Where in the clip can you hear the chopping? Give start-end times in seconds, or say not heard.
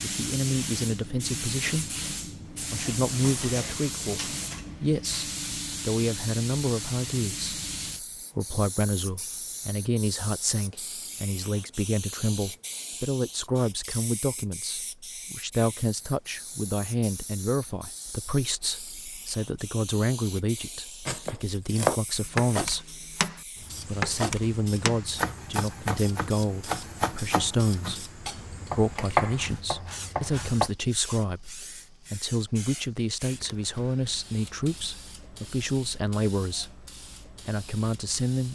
21.1-30.7.